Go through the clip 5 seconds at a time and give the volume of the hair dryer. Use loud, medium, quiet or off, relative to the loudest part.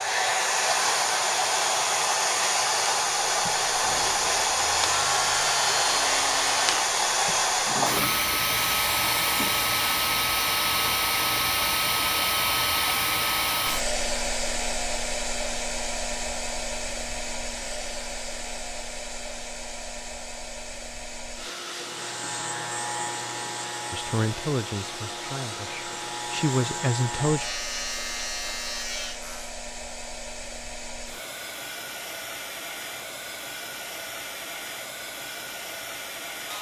loud, loud, loud, medium, quiet, quiet, quiet, quiet.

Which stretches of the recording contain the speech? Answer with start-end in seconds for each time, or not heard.
23.9-27.4.